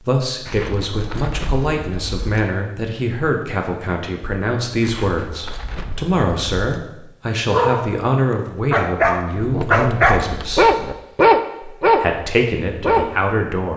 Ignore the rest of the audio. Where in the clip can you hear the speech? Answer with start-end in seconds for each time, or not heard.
0.1-10.7, 11.8-13.7.